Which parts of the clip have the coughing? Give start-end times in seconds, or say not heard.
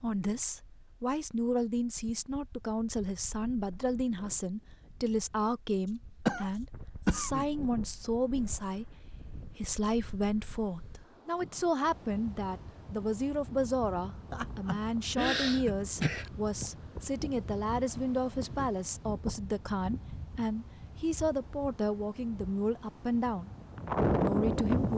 5.8-7.5, 14.3-16.3.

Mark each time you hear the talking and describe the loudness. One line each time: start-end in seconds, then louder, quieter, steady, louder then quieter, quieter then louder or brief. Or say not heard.
0.0-23.5 steady
24.2-24.9 brief.